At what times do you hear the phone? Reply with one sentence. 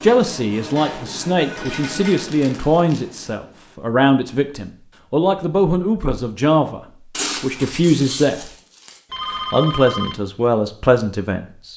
The phone can be heard from 1.4 to 2.2 s and from 9.1 to 10.2 s.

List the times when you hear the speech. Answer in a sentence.
The speech can be heard from 0.0 to 6.8 s, from 7.4 to 8.5 s and from 9.5 to 11.7 s.